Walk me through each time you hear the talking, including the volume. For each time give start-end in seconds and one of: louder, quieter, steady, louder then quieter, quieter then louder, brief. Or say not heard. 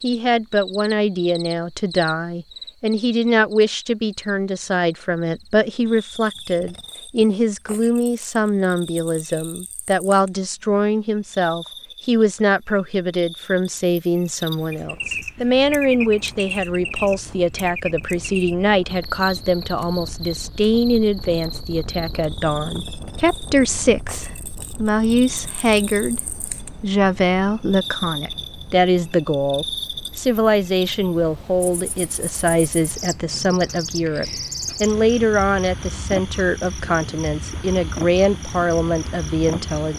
0.0-39.9 steady.